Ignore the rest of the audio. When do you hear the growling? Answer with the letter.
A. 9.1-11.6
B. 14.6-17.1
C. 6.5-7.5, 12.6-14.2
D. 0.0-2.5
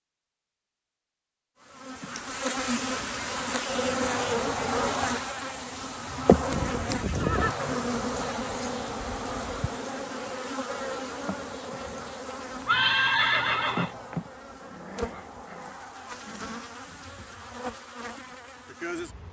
B.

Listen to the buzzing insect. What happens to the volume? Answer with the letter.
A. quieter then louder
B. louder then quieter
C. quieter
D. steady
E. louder
C.